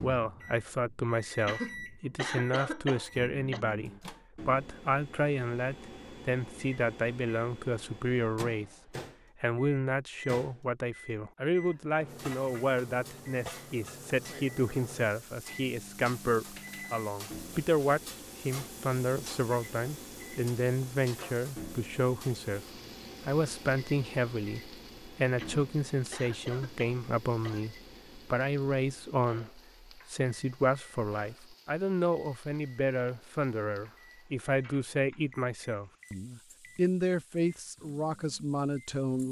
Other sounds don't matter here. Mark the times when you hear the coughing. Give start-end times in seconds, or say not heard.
1.4-3.6, 25.4-27.7.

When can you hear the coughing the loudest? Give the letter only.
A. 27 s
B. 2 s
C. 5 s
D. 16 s
B.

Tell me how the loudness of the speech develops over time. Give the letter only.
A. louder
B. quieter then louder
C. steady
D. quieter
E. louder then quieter
C.